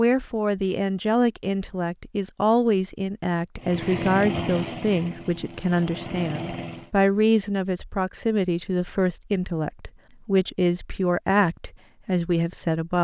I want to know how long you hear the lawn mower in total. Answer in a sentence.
You can hear the lawn mower for 3 seconds altogether.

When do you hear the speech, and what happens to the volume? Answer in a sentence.
You can hear the speech from 0.0 to 12.9 s, at a steady volume.